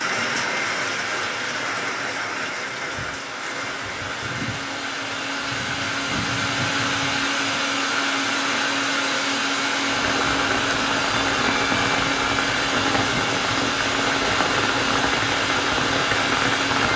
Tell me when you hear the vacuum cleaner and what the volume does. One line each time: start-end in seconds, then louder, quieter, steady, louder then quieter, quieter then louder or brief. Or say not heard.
0.0-16.9 louder.